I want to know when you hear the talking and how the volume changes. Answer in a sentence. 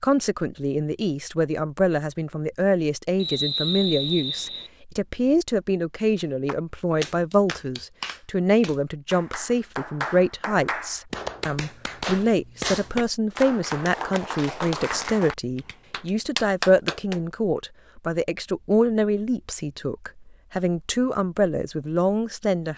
The talking can be heard from 0.0 to 22.7 s, at a steady volume.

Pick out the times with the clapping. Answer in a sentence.
The clapping can be heard from 6.5 to 17.2 s.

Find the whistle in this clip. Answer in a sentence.
The whistle can be heard from 3.1 to 4.7 s.